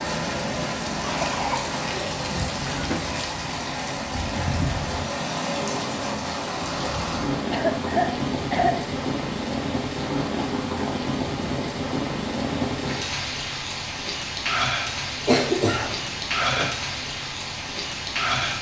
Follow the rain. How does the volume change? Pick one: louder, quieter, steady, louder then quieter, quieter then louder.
steady.